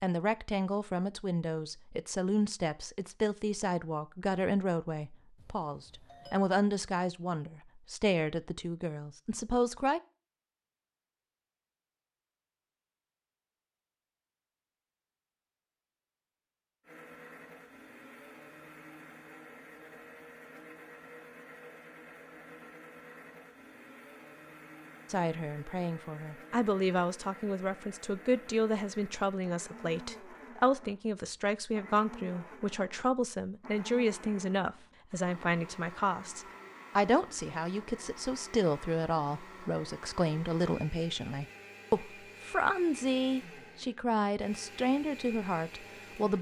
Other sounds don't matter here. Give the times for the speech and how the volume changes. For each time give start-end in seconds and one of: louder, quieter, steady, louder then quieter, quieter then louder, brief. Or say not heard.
0.0-10.0 steady
25.1-46.3 steady.